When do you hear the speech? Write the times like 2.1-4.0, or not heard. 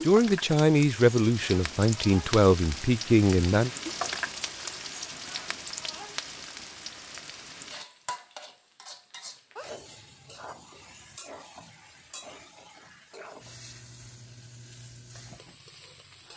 0.1-3.7.